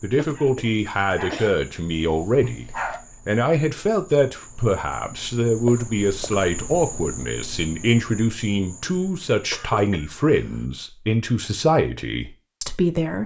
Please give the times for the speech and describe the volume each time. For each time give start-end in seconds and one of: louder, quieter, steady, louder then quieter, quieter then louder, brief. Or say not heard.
0.0-13.2 steady.